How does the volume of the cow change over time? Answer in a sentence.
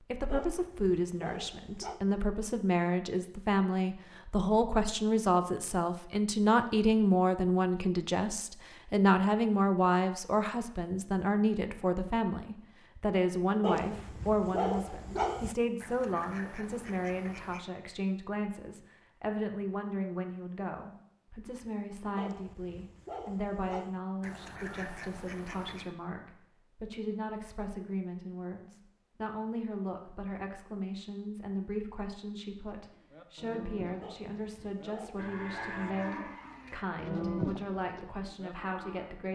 The volume of the cow goes up, then down.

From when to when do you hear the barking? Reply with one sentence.
The barking can be heard from 0.3 to 2.0 s, from 13.6 to 15.6 s, from 22.1 to 24.0 s and from 34.0 to 35.9 s.